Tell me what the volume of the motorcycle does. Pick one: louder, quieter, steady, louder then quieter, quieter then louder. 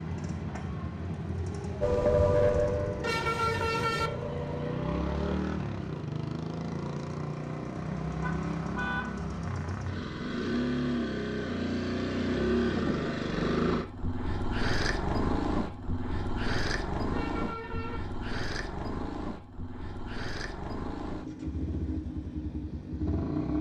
louder then quieter.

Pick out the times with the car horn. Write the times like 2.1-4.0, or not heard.
3.0-4.1, 8.2-9.2, 17.1-18.0.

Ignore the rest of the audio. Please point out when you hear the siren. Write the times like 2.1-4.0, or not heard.
1.8-5.3.